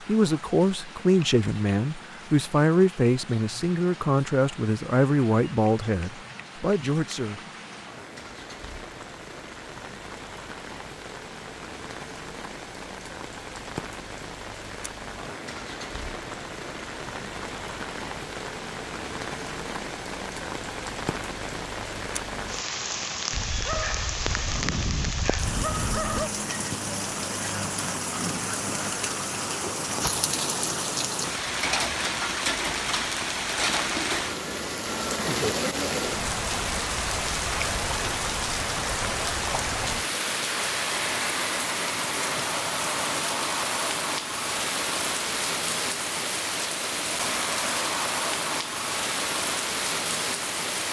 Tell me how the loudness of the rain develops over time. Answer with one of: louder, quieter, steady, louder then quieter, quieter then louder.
louder.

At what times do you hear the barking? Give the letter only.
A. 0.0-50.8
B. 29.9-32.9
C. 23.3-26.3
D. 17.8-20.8
C.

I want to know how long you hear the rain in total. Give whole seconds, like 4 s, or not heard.
51 s.